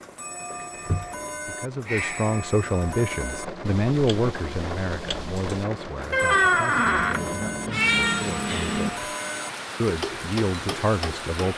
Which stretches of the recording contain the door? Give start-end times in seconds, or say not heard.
6.1-7.2.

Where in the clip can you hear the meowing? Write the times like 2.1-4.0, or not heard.
7.0-8.9.